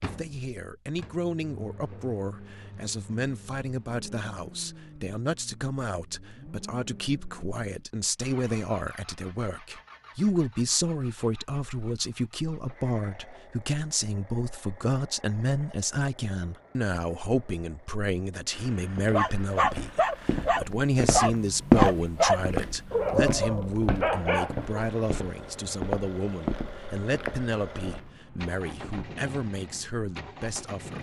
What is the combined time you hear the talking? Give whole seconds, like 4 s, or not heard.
31 s.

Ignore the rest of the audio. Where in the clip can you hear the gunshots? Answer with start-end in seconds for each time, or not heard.
not heard.